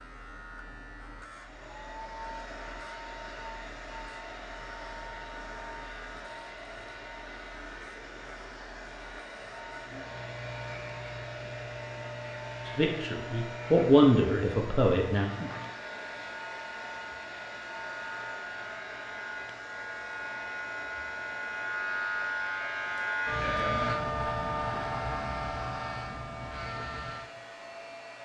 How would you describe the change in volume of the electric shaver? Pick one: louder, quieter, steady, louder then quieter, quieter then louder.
louder.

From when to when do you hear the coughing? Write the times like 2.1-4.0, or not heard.
22.9-24.1.